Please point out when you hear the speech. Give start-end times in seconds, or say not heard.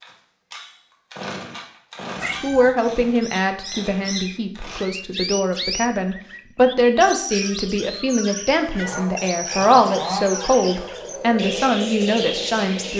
2.4-12.9.